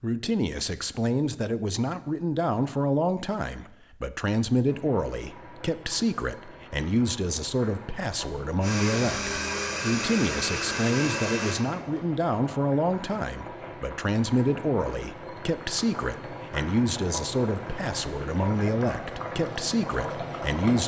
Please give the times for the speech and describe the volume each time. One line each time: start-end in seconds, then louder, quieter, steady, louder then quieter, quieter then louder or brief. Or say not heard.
0.0-20.8 steady.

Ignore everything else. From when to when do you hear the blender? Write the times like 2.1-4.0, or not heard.
8.6-11.6.